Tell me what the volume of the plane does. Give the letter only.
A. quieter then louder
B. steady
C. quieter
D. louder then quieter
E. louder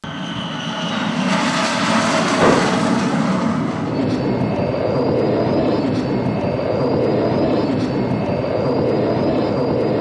B.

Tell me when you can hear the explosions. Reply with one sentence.
The explosions can be heard from 2.4 to 2.9 s.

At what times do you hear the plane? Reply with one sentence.
The plane can be heard from 0.0 to 9.9 s.